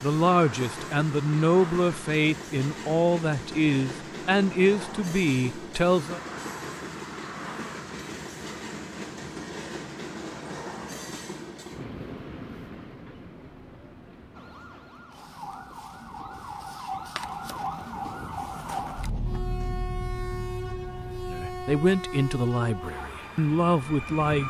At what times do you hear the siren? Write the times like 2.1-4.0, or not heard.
14.3-24.2.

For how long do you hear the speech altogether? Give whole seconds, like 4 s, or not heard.
9 s.